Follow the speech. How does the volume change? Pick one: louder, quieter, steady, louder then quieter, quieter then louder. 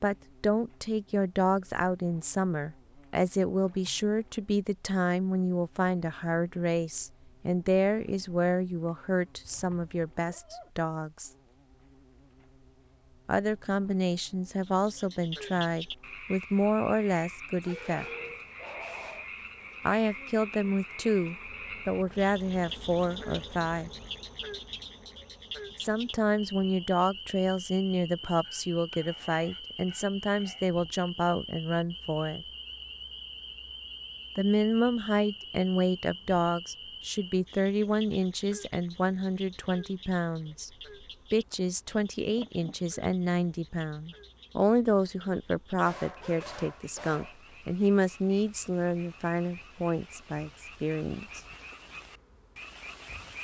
steady.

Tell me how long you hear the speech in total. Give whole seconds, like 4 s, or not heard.
43 s.